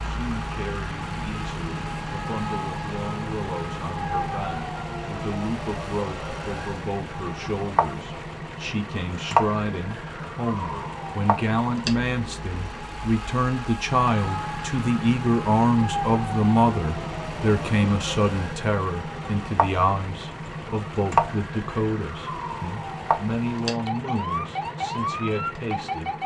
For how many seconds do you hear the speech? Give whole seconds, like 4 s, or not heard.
26 s.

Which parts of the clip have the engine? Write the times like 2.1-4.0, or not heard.
0.0-26.2.